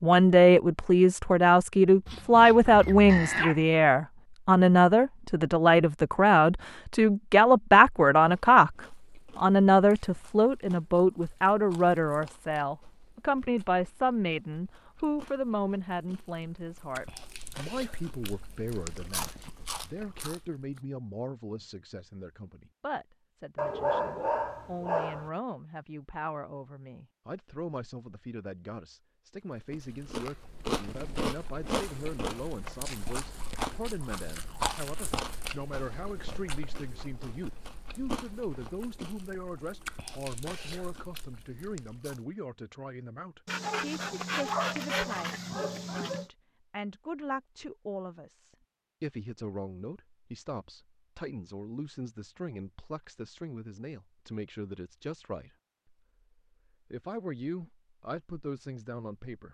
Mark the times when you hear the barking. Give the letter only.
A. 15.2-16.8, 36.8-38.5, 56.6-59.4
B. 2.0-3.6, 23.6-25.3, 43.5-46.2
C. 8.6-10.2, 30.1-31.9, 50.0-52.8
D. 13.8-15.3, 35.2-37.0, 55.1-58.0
B.